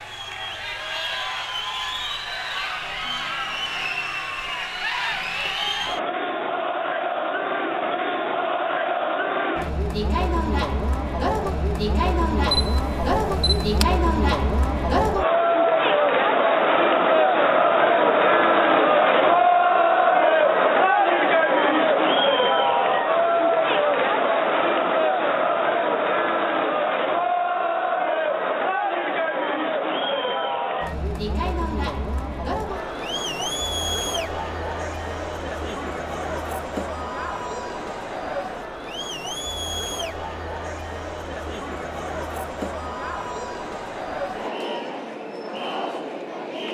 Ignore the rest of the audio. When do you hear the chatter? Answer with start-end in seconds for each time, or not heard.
0.0-46.6.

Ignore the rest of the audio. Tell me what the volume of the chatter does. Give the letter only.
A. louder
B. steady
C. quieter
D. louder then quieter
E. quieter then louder
D.